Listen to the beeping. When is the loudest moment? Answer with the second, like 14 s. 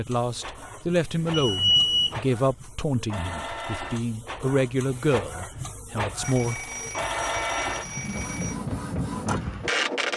2 s.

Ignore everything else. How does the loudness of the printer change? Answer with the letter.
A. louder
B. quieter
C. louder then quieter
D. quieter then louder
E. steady
A.